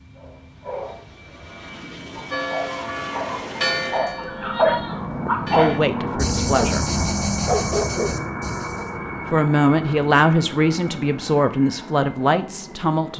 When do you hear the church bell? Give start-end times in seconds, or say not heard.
2.3-5.8.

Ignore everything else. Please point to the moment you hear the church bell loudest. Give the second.
4 s.